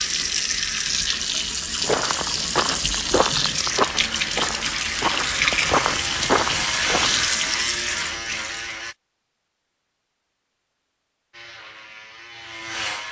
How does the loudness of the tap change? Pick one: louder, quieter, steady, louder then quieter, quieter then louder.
steady.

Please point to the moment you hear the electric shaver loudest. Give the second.
7 s.